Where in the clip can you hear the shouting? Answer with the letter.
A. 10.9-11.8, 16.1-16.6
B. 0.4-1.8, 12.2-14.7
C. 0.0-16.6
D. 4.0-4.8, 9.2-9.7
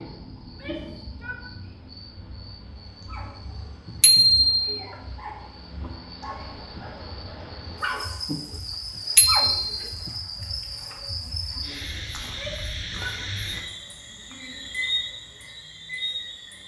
B.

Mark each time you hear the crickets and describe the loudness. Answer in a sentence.
You can hear the crickets from 0.0 to 16.6 s, getting louder.